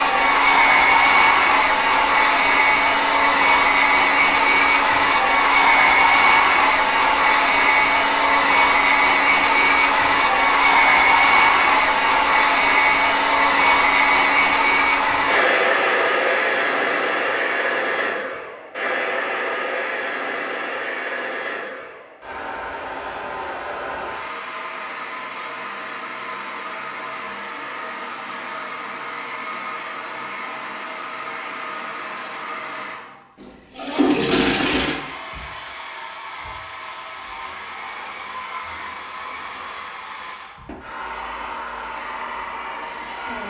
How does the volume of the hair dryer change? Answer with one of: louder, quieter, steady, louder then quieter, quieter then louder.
quieter.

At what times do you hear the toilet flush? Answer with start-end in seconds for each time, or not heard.
33.4-35.0.